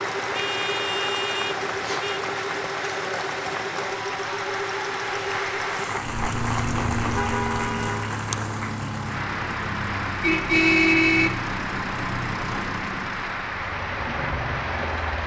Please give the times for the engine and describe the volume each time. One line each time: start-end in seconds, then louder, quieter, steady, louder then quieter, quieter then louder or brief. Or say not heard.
0.0-15.2 steady.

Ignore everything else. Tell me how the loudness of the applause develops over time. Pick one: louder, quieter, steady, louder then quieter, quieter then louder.
steady.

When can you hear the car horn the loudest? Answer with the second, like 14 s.
11 s.